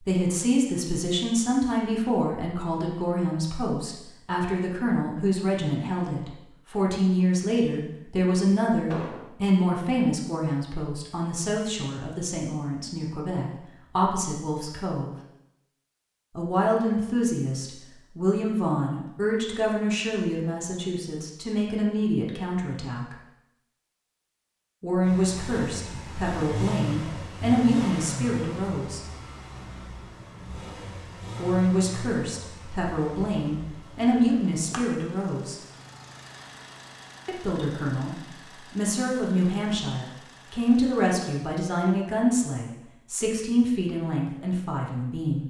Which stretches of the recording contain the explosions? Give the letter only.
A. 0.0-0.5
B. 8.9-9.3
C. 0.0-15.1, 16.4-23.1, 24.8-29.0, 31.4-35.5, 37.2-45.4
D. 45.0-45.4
B.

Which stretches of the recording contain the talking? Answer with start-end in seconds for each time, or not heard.
0.0-15.1, 16.4-23.1, 24.8-29.0, 31.4-35.5, 37.2-45.4.